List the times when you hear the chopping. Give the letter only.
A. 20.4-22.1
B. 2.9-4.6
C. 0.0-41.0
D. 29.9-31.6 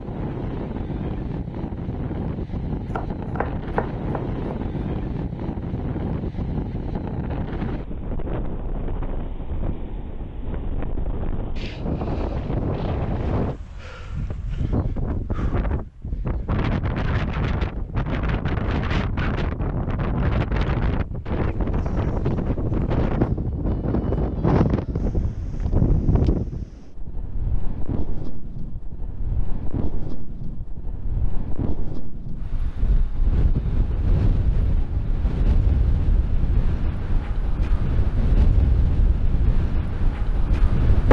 B.